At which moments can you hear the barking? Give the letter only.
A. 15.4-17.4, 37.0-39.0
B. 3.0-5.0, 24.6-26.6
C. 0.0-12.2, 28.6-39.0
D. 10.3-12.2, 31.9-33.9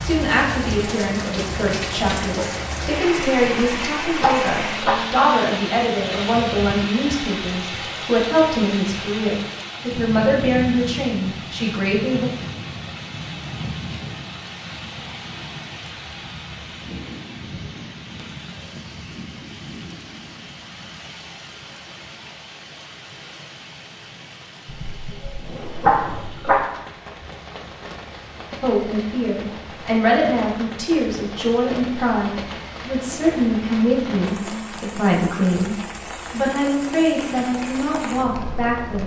B.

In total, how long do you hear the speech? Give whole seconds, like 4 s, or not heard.
23 s.